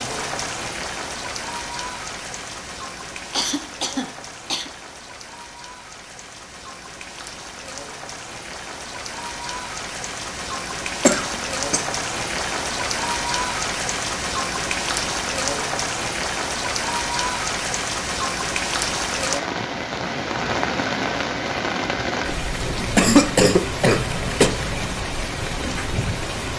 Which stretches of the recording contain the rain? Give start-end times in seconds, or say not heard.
0.0-26.5.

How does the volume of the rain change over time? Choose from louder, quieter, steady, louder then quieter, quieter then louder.
louder.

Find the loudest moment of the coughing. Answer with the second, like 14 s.
23 s.